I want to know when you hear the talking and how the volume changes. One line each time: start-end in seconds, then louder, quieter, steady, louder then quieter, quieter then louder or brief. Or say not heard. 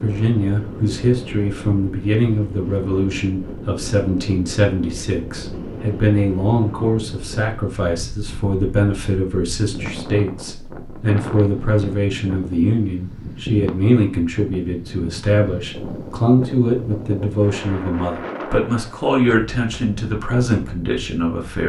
0.0-21.6 steady.